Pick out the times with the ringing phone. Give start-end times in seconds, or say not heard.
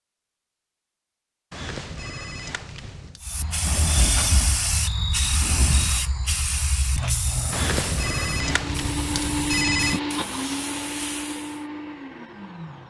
1.5-3.2, 7.5-10.0.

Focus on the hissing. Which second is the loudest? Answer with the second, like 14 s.
4 s.